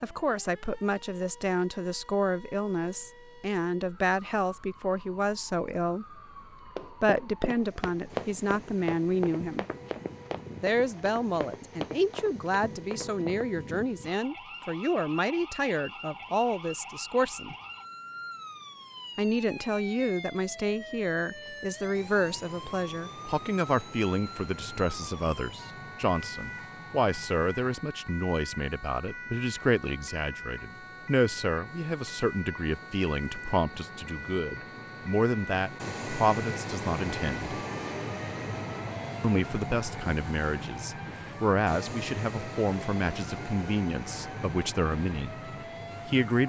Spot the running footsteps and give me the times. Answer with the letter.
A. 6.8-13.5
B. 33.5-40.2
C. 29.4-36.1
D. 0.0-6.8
A.